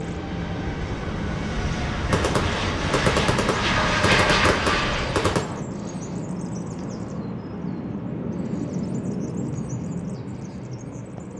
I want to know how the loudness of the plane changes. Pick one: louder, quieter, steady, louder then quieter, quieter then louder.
louder.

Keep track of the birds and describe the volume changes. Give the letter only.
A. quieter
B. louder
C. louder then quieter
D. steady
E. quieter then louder
D.